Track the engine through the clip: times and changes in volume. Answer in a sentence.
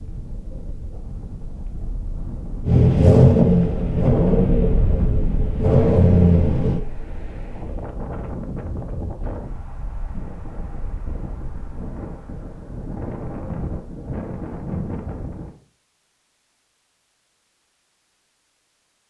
You can hear the engine from 2.6 to 6.8 s, getting quieter then louder.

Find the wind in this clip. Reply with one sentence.
The wind can be heard from 0.0 to 15.6 s.